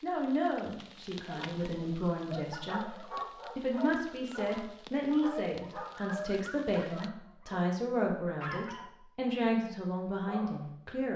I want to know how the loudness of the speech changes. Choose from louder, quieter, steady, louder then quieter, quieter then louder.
steady.